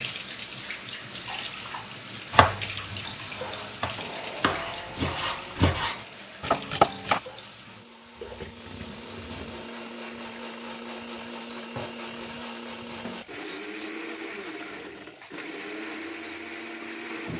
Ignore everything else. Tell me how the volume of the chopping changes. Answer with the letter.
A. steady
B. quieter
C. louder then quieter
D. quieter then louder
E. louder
E.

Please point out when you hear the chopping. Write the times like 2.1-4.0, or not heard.
2.3-7.2.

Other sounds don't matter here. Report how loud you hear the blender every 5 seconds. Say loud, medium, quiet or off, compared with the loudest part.
loud, medium, loud, loud.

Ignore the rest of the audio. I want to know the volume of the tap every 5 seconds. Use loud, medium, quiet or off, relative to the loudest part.
loud, medium, medium, medium.